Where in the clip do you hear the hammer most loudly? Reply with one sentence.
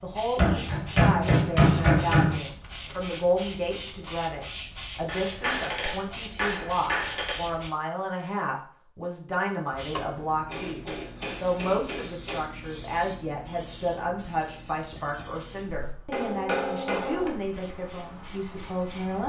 The loudest moment of the hammer is at 2 seconds.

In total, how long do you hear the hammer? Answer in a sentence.
You can hear the hammer for 8 seconds altogether.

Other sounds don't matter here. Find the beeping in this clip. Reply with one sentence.
You can't hear the beeping here.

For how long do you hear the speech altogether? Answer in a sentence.
The speech can be heard for 19 seconds in total.